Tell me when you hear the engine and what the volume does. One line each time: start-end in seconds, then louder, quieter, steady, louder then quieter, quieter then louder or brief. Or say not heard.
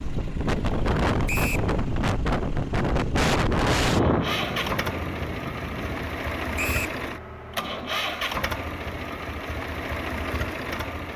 0.0-11.1 louder.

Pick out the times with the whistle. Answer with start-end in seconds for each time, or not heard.
1.2-1.7, 6.5-7.0.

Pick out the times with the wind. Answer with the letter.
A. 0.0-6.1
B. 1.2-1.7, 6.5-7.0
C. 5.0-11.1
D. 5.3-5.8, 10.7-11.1
A.